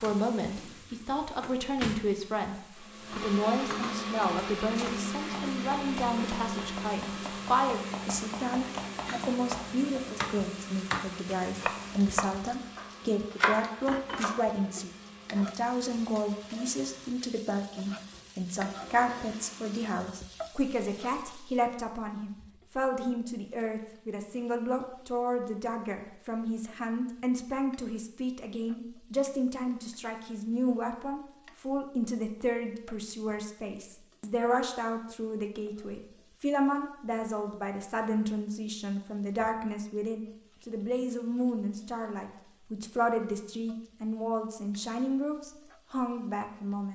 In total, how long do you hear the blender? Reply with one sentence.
The blender can be heard for 17 seconds in total.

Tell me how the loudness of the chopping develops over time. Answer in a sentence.
The loudness of the chopping goes up.